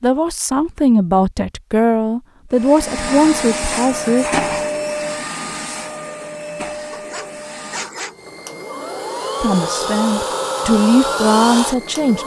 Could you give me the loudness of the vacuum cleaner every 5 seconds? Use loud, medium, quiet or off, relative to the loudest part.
loud, medium, loud.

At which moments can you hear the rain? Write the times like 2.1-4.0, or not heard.
not heard.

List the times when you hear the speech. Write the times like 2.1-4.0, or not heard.
0.0-4.4, 9.4-12.2.